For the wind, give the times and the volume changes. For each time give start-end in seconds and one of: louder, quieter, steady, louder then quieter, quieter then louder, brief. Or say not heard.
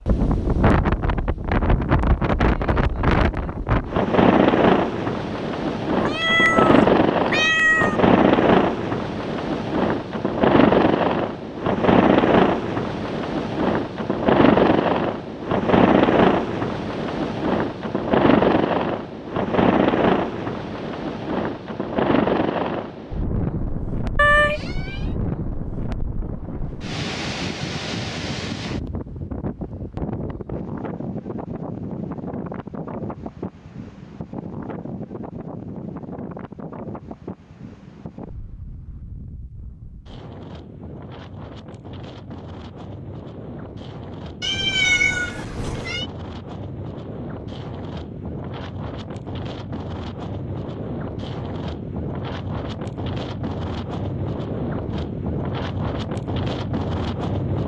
0.1-57.6 quieter then louder.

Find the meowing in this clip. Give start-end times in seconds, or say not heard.
6.0-8.0, 24.1-25.0, 44.4-46.0.